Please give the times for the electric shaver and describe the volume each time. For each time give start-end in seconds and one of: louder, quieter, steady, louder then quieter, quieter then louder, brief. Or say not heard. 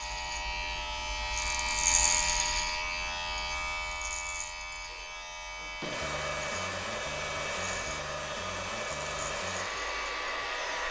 0.0-10.8 quieter.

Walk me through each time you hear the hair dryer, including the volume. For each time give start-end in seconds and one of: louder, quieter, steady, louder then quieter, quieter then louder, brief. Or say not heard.
4.8-10.8 steady.